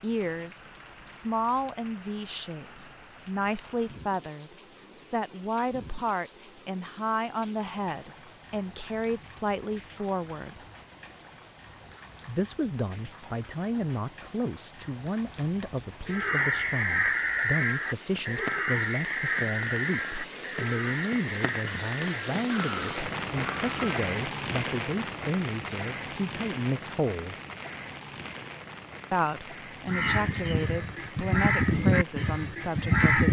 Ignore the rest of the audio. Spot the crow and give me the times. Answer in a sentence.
The crow can be heard from 16.1 to 23.9 s and from 29.9 to 33.2 s.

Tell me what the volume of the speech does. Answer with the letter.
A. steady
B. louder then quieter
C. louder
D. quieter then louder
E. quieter
A.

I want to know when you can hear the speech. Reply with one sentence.
The speech can be heard from 0.0 to 10.6 s, from 12.2 to 27.4 s and from 29.1 to 33.2 s.